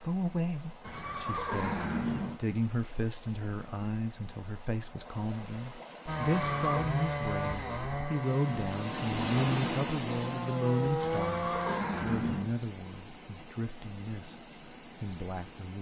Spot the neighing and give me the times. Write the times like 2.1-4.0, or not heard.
0.8-2.4, 6.2-6.9, 11.0-12.6.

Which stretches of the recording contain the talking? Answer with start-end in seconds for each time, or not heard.
0.0-15.7.